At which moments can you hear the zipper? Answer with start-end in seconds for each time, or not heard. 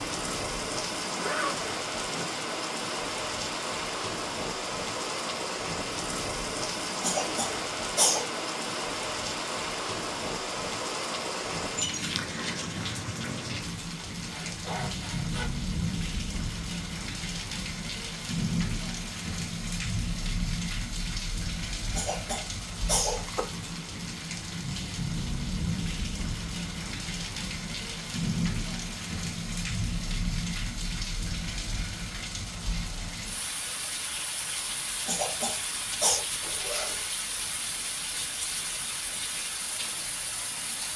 1.1-2.4, 14.1-15.4, 36.4-37.0.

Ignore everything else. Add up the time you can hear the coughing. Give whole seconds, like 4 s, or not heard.
4 s.